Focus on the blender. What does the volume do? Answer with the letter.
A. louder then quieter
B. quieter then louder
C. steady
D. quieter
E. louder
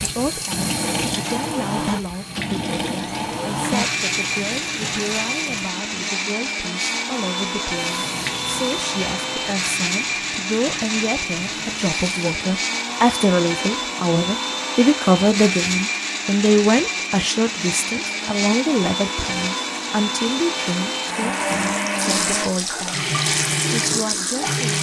C.